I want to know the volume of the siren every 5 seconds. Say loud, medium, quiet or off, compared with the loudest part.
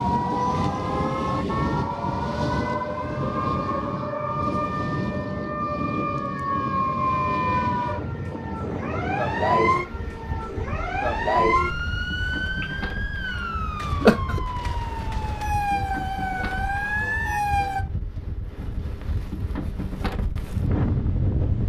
loud, loud, loud, loud, off.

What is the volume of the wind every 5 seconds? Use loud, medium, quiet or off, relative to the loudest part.
loud, loud, medium, medium, loud.